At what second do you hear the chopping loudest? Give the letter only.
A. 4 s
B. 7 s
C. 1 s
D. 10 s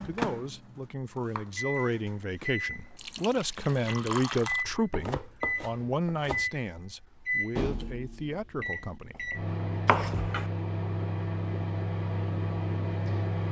D.